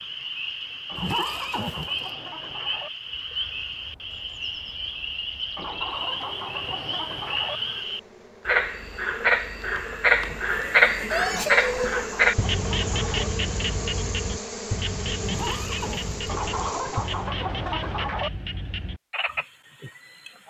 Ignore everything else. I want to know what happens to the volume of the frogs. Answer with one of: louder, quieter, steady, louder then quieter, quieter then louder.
louder then quieter.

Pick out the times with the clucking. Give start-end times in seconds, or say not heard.
0.8-2.9, 5.5-7.6, 11.2-13.3, 16.2-18.3.